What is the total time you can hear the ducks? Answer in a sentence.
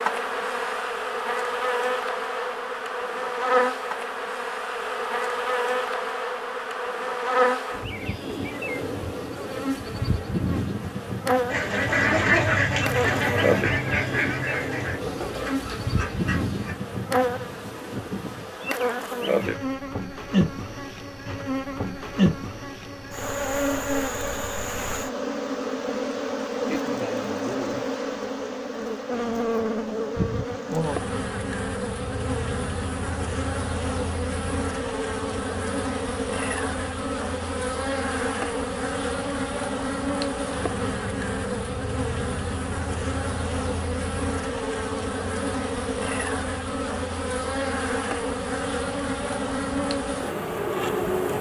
You can hear the ducks for 5 seconds altogether.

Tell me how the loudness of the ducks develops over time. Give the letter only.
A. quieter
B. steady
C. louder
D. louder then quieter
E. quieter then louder
A.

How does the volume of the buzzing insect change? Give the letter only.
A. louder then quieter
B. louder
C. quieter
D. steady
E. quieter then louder
D.